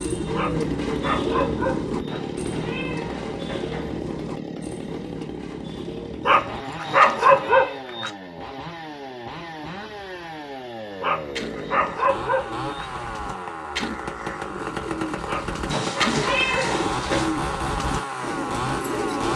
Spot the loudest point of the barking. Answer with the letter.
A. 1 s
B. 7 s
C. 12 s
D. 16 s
B.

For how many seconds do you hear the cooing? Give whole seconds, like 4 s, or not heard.
15 s.